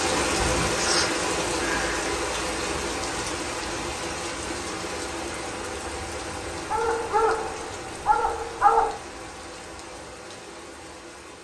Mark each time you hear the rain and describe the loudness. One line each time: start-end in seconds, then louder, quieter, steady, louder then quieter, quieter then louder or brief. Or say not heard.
0.0-11.3 quieter.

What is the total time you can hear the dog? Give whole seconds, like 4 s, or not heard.
2 s.